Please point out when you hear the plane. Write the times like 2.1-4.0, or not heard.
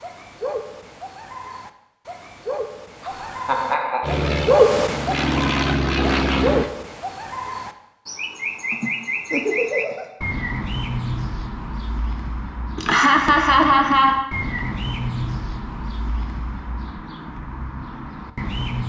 4.0-6.7.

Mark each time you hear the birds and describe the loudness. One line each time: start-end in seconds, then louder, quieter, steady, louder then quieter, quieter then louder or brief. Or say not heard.
0.0-18.8 louder then quieter.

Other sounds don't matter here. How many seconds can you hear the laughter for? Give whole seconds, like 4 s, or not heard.
4 s.